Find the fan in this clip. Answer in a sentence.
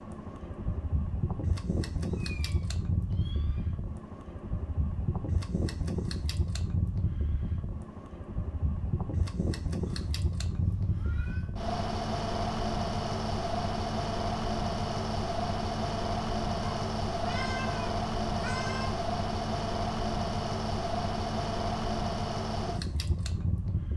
You can hear the fan from 0.0 to 23.9 s.